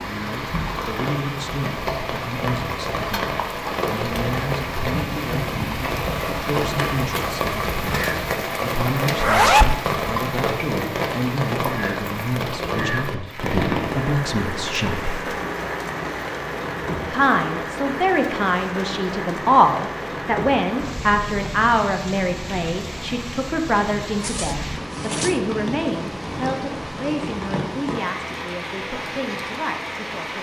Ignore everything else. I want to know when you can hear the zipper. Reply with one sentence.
You can hear the zipper from 9.2 to 9.8 s and from 24.2 to 25.4 s.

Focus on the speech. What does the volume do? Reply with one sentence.
The loudness of the speech goes up, then down.